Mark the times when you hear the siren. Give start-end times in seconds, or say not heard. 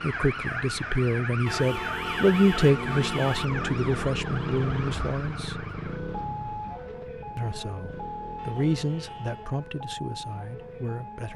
0.0-11.3.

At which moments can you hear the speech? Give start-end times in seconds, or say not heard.
0.0-5.5, 7.3-11.3.